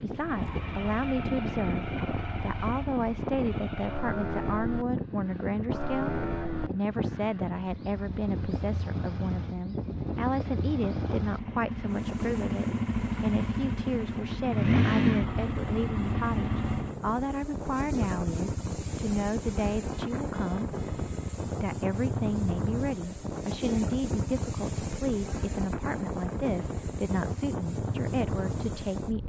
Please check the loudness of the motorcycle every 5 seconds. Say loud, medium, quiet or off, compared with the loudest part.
medium, medium, loud, loud, medium, medium.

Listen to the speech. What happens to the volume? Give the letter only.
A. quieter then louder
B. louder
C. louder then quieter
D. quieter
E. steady
E.